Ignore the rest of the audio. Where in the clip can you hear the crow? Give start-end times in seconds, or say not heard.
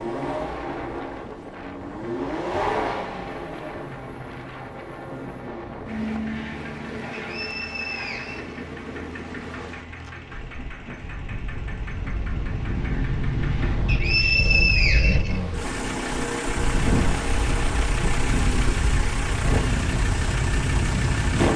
not heard.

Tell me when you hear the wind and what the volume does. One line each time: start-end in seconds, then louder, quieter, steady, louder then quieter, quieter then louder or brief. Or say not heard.
0.1-21.5 louder.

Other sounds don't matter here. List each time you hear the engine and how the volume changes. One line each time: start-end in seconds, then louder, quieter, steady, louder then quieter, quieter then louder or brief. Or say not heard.
0.0-21.5 quieter then louder.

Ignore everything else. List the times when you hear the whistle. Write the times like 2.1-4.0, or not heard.
7.2-8.7, 13.8-15.4.